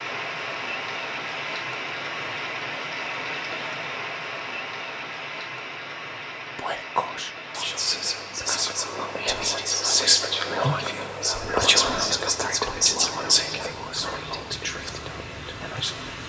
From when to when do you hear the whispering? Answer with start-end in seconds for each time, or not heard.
6.5-16.1.